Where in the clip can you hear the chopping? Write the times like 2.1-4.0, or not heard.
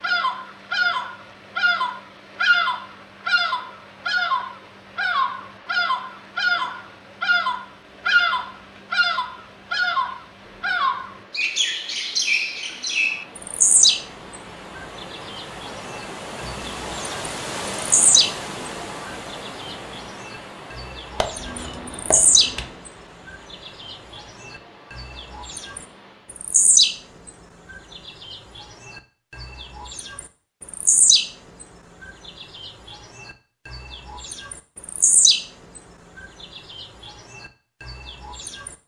21.1-22.8.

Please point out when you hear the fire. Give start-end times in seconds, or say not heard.
not heard.